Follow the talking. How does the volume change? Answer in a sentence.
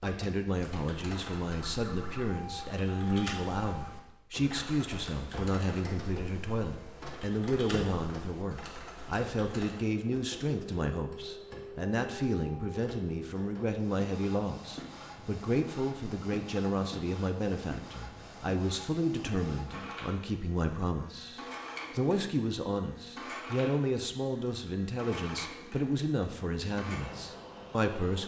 The loudness of the talking stays about the same.